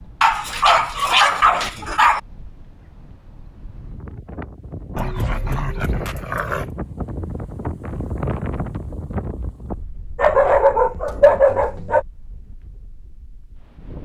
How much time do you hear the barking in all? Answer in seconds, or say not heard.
6 s.